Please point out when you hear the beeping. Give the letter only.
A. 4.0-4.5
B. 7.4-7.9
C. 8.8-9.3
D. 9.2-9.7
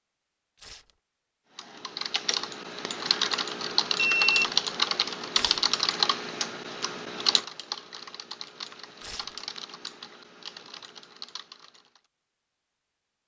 A.